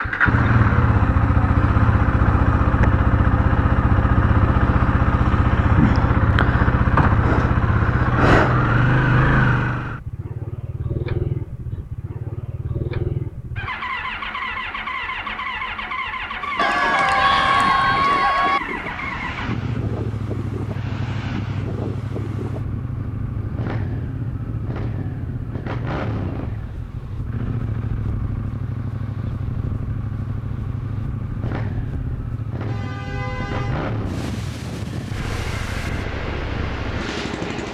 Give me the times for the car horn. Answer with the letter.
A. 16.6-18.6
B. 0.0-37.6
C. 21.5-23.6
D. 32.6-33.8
D.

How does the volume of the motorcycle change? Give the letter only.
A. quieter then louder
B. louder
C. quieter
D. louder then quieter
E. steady
C.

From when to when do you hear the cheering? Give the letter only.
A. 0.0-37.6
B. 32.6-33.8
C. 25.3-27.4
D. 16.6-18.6
D.